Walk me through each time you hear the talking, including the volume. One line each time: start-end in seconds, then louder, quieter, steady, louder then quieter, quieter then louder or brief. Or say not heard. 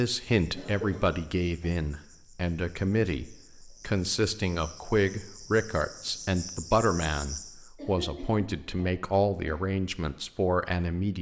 0.0-11.1 steady.